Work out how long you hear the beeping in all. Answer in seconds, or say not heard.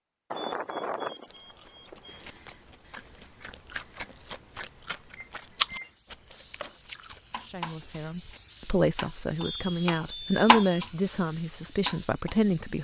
4 s.